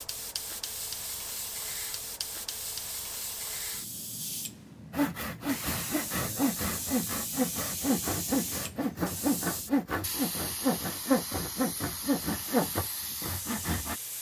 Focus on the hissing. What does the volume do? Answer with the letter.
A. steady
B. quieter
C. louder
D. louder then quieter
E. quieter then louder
A.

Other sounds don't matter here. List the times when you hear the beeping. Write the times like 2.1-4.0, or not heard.
not heard.